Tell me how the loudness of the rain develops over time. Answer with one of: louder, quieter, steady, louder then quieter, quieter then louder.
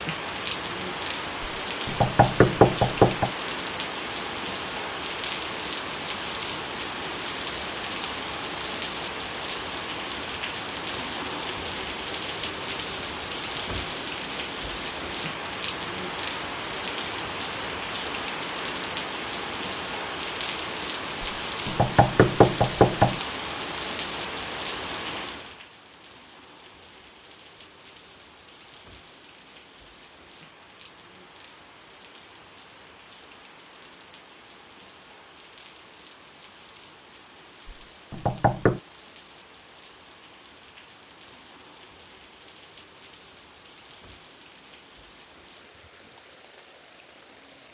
quieter.